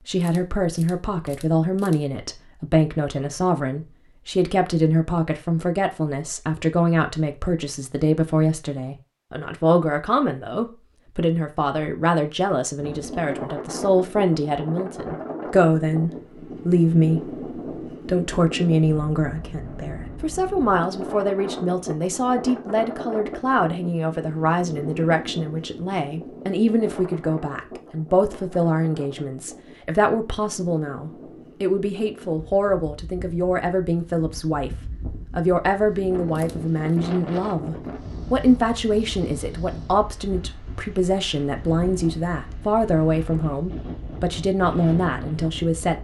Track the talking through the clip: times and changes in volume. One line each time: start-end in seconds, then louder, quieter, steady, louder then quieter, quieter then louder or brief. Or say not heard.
0.1-45.9 steady.